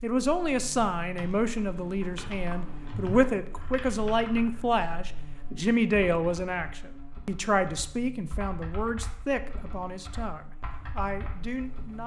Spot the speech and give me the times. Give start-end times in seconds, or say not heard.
0.0-12.0.